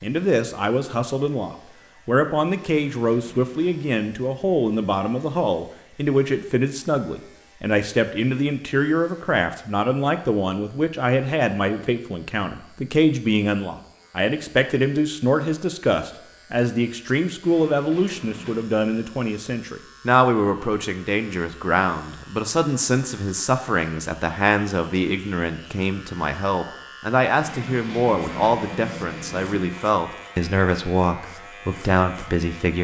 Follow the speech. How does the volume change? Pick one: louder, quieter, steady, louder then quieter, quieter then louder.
steady.